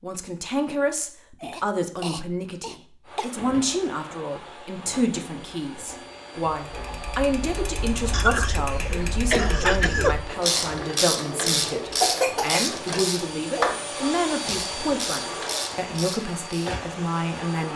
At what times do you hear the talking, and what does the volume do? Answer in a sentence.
You can hear the talking from 0.0 to 17.7 s, at a steady volume.